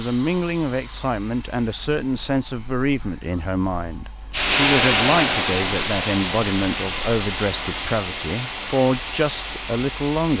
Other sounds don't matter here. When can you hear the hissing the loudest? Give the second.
5 s.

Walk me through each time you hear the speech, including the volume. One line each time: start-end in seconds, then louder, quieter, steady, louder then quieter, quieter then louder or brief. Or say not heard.
0.0-10.3 steady.